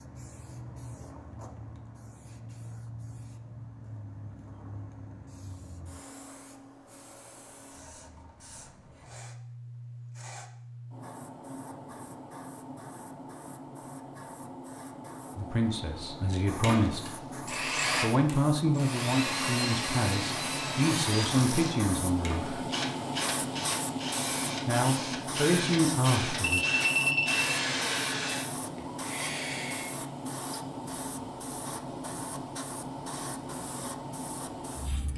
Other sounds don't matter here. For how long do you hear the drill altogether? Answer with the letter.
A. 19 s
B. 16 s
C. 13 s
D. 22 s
C.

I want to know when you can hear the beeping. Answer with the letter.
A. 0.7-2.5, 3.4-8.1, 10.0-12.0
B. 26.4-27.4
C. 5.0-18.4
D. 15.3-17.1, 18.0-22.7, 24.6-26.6
B.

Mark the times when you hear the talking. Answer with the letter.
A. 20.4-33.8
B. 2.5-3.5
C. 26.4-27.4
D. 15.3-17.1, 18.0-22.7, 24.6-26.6
D.